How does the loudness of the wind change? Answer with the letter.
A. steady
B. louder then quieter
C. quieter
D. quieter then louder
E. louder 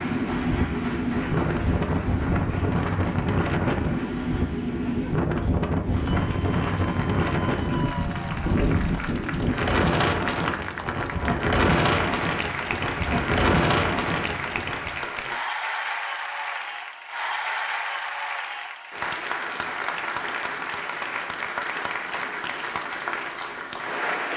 A.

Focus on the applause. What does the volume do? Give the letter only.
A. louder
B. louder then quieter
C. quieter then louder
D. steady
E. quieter
A.